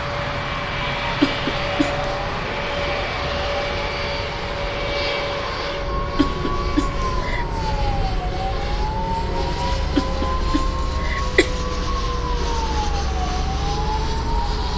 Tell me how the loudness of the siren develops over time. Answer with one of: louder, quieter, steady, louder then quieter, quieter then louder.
louder.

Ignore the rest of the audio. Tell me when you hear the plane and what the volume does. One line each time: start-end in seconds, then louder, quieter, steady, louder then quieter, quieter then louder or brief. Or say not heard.
0.0-14.7 quieter.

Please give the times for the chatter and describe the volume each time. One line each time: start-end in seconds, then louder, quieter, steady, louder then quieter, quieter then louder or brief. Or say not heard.
not heard.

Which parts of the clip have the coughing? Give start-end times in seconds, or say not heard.
1.2-2.0, 6.2-7.5, 9.9-11.5.